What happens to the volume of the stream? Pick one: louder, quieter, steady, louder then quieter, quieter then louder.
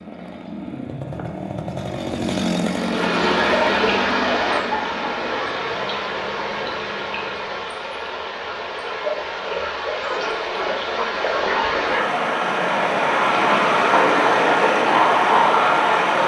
quieter then louder.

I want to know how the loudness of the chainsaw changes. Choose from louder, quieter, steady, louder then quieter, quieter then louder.
louder then quieter.